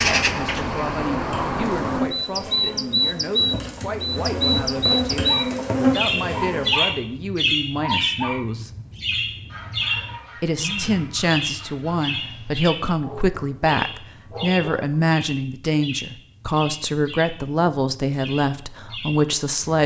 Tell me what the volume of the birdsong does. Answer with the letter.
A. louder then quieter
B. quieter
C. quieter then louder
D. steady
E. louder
B.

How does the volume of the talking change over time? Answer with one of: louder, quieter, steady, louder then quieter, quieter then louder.
louder.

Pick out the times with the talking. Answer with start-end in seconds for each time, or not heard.
0.0-8.7, 10.4-19.8.